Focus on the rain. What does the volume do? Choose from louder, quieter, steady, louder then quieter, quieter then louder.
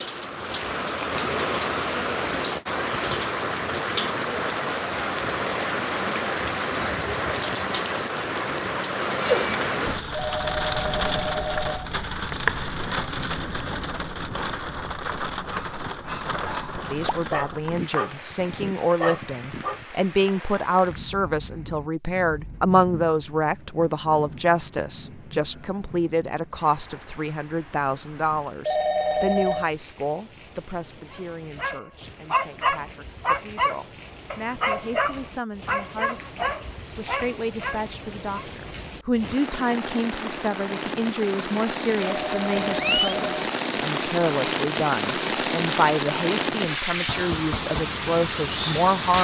quieter then louder.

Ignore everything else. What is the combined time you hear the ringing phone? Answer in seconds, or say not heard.
4 s.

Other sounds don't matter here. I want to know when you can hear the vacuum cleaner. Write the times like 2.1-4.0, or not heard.
not heard.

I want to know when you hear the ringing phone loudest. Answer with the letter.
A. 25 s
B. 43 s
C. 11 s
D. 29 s
D.